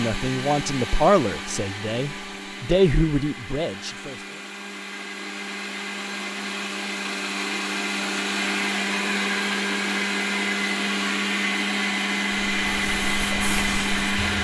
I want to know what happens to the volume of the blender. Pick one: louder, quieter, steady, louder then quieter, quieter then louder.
louder.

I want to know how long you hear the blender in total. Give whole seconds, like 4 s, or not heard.
14 s.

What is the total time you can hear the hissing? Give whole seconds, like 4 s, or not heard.
2 s.